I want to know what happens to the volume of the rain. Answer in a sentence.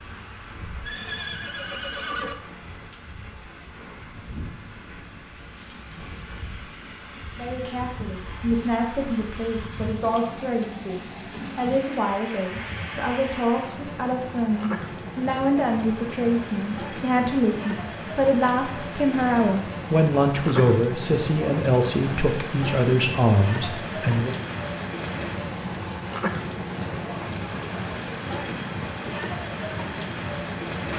The volume of the rain goes up.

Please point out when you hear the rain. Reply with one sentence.
You can hear the rain from 0.0 to 30.9 s.